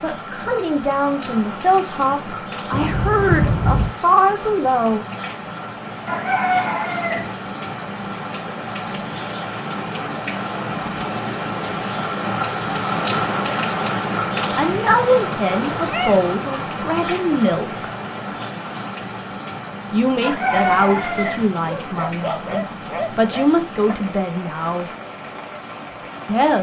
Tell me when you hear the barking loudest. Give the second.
22 s.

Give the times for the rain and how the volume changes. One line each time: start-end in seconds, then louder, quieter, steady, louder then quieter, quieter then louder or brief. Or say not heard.
0.0-26.5 louder then quieter.